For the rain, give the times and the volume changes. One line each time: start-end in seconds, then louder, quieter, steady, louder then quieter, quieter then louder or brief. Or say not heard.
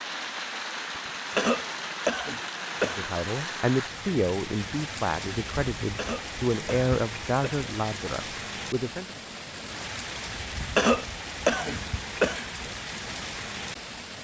0.0-14.1 steady.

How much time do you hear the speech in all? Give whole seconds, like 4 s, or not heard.
6 s.